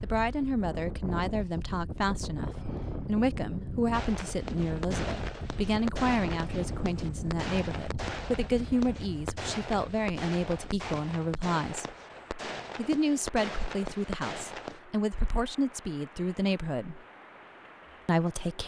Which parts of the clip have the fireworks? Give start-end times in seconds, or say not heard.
3.9-14.8.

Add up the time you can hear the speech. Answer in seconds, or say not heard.
17 s.